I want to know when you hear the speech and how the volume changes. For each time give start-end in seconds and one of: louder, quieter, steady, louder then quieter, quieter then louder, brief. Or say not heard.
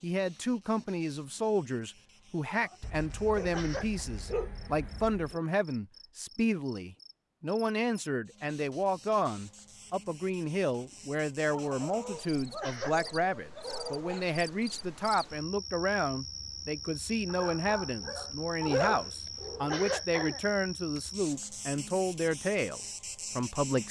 0.0-23.8 steady.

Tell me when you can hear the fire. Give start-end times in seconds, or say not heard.
not heard.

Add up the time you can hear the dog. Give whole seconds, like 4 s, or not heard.
8 s.